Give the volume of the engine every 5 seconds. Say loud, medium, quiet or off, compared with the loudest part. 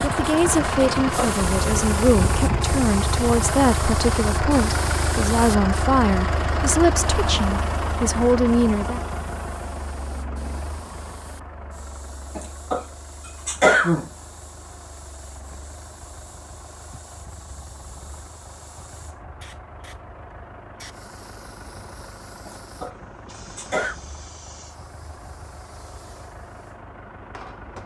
loud, loud, quiet, quiet, quiet, quiet.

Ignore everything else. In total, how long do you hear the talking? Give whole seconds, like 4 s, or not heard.
9 s.